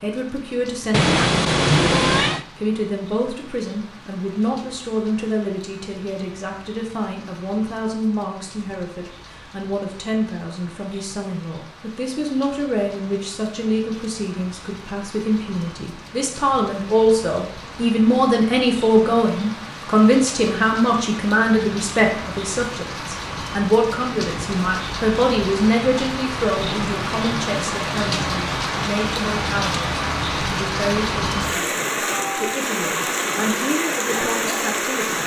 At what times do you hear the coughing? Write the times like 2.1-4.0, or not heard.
not heard.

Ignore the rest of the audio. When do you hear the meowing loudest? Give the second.
2 s.